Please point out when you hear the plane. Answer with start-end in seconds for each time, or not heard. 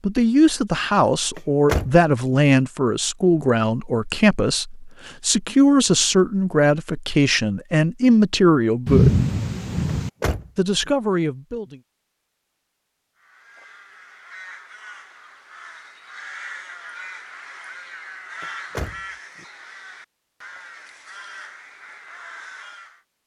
not heard.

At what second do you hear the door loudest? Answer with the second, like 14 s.
2 s.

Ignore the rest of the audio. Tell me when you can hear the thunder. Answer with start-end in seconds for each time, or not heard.
8.8-10.1.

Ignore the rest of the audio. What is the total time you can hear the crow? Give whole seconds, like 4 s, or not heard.
10 s.